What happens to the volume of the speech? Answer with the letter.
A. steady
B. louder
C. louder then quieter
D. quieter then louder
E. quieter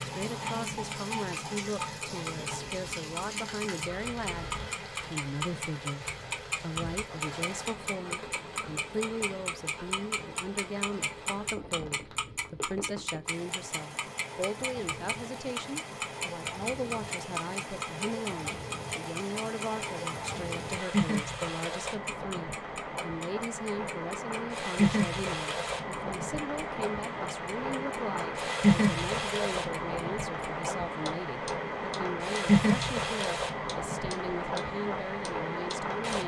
A.